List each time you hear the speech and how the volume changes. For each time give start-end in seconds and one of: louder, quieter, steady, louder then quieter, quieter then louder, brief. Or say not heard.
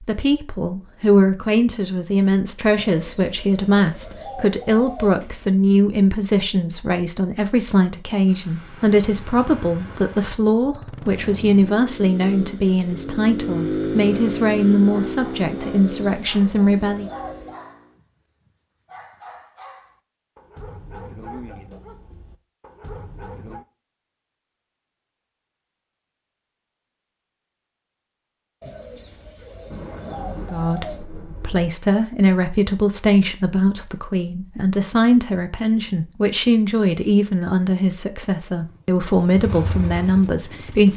0.0-17.1 steady
30.5-40.9 steady.